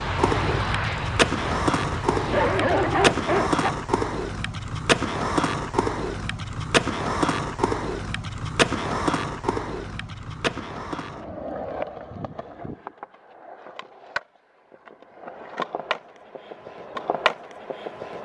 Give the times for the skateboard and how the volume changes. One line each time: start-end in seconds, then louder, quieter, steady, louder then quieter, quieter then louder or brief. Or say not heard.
0.0-18.1 quieter.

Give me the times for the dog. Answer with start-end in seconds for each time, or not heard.
2.1-3.8.